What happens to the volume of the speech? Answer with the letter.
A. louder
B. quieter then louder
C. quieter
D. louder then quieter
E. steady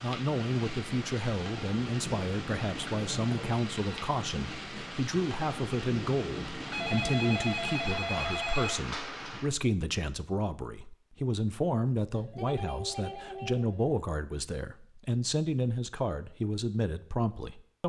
E.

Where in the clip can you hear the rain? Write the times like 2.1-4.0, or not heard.
0.0-9.5.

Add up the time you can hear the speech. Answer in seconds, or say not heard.
18 s.